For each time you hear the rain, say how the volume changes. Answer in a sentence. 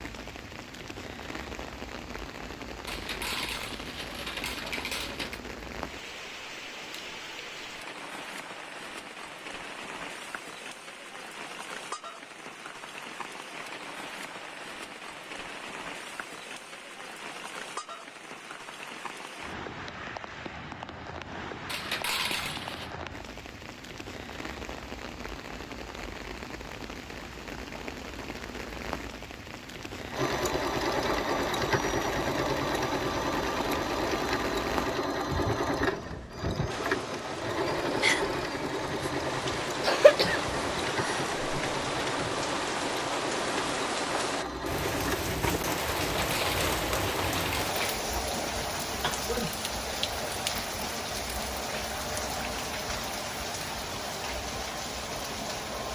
The rain can be heard from 0.0 to 55.9 s, getting louder.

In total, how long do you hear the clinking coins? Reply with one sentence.
You can hear the clinking coins for 6 seconds altogether.